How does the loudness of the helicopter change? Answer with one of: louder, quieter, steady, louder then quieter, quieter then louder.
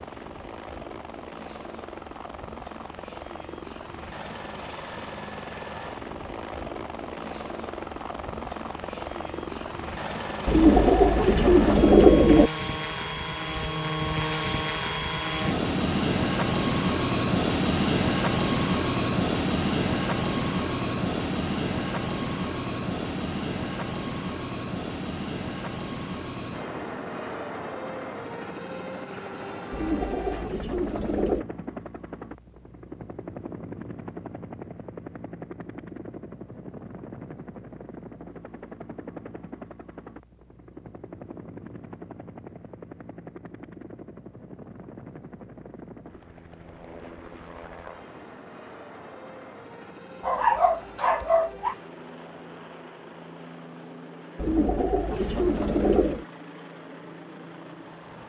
louder then quieter.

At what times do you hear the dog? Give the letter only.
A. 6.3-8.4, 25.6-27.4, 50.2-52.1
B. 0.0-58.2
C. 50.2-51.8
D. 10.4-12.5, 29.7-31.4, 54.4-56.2
C.